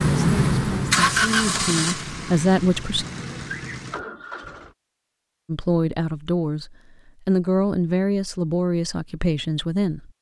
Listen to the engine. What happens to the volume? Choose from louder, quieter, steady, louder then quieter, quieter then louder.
quieter.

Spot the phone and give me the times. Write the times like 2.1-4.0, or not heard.
not heard.